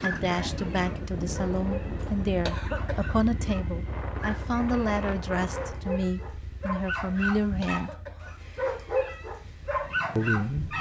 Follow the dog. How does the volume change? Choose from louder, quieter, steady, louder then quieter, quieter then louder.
louder.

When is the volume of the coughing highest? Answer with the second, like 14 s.
3 s.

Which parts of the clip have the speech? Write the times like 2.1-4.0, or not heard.
0.0-7.9, 10.2-10.7.